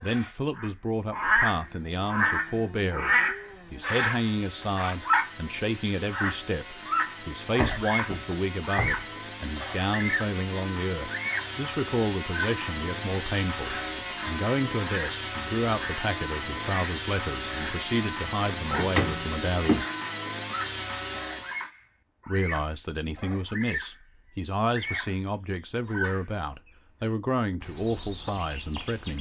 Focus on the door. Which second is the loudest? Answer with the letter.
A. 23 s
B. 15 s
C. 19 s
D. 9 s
C.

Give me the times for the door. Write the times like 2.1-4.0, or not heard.
7.5-9.1, 18.7-19.9.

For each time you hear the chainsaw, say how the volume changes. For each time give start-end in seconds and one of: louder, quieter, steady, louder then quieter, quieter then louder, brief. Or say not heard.
1.6-21.7 louder.